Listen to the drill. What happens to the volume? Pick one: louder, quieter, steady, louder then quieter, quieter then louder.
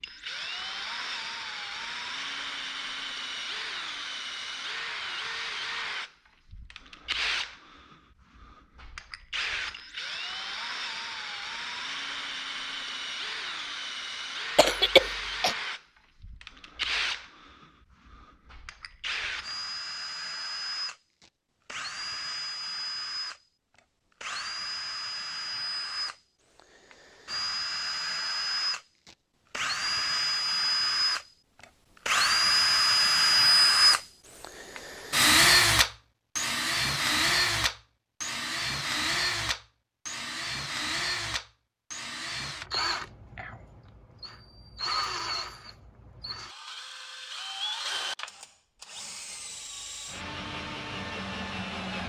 louder then quieter.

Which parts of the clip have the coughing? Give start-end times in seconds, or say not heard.
14.6-15.6.